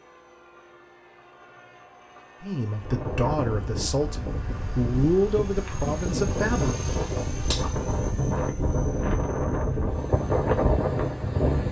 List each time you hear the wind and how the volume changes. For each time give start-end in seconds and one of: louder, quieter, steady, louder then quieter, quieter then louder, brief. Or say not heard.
2.8-11.6 louder.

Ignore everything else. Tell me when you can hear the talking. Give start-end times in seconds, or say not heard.
2.4-6.8.